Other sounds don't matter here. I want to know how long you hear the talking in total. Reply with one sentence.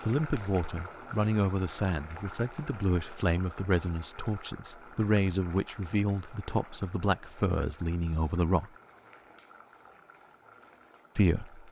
You can hear the talking for 9 seconds altogether.